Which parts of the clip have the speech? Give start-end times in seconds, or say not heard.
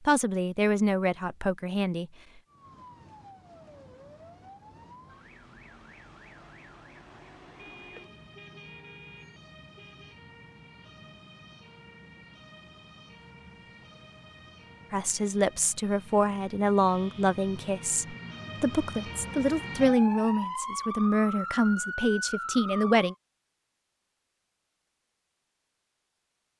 0.1-2.0, 14.9-23.1.